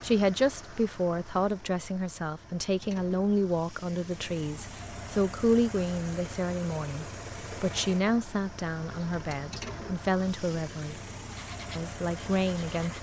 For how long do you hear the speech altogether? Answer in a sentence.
You can hear the speech for 12 seconds altogether.